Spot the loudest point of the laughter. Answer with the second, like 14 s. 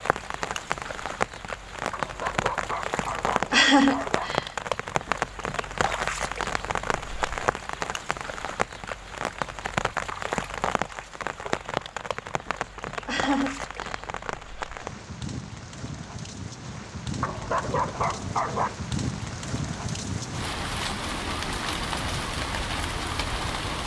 4 s.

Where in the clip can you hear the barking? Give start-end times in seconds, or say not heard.
1.9-4.3, 17.2-18.8.